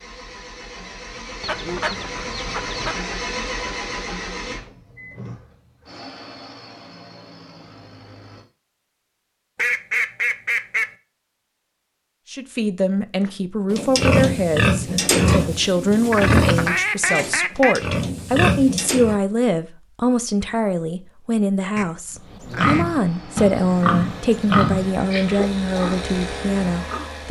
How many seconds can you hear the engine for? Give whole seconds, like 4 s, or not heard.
13 s.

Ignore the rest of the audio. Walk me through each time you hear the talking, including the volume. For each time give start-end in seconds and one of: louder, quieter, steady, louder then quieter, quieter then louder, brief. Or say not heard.
12.3-27.2 steady.